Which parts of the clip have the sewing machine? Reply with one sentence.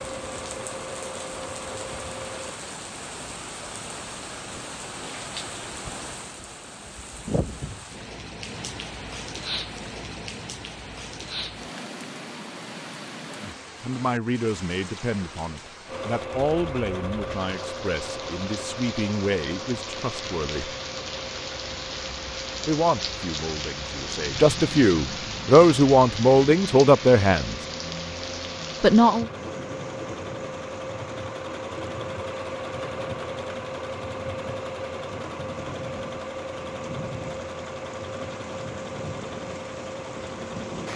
You can hear the sewing machine from 0.0 to 2.6 s and from 15.8 to 40.9 s.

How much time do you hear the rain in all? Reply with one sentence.
You can hear the rain for 41 seconds altogether.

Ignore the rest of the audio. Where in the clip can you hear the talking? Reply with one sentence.
The talking can be heard from 13.8 to 20.8 s, from 22.6 to 27.6 s and from 28.8 to 29.2 s.